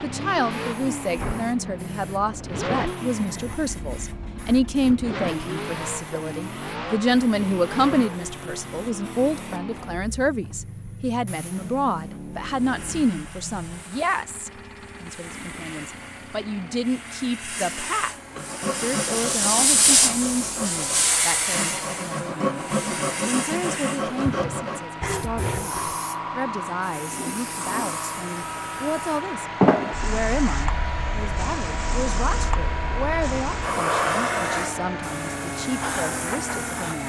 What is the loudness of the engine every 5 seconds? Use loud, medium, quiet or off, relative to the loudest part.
loud, loud, medium, medium, medium, loud, loud, loud.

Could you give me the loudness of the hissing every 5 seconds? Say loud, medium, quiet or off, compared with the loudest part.
quiet, quiet, quiet, loud, loud, loud, loud, medium.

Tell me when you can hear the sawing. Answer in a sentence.
You can hear the sawing from 18.3 to 25.9 s.